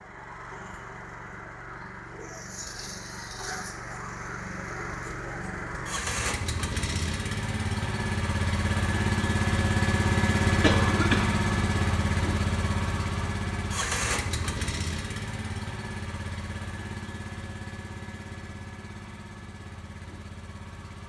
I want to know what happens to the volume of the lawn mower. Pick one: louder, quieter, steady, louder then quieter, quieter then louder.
louder then quieter.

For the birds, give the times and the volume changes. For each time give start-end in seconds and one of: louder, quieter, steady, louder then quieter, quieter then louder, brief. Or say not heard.
not heard.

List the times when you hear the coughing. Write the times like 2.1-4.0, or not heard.
10.6-11.3.